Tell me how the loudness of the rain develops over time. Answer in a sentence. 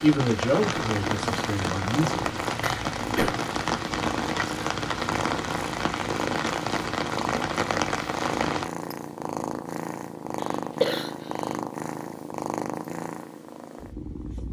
The loudness of the rain stays about the same.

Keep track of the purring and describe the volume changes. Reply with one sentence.
The loudness of the purring stays about the same.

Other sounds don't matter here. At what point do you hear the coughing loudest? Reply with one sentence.
The volume of the coughing peaks at 11 seconds.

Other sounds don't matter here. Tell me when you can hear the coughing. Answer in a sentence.
You can hear the coughing from 2.6 to 3.4 s and from 10.3 to 11.6 s.